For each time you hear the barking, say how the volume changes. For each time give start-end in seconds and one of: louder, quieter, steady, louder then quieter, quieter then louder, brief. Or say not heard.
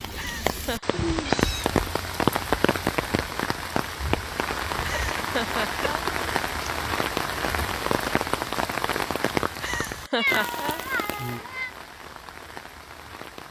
not heard.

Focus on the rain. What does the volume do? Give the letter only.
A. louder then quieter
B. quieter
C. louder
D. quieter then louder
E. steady
B.